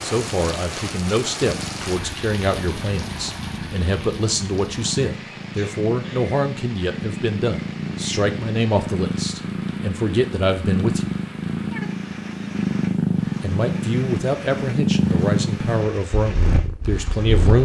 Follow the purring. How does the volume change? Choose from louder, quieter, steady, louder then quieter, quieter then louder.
louder.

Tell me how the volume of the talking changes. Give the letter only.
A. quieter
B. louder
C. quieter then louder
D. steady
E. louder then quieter
D.